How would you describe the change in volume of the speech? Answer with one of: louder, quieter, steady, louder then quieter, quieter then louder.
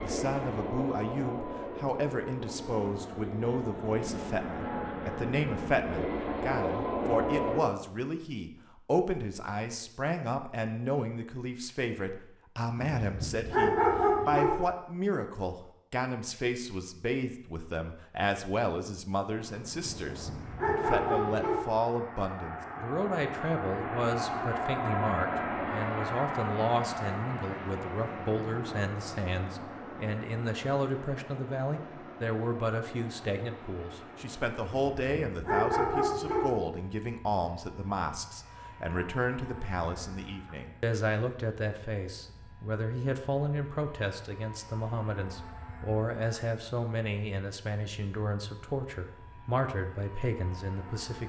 steady.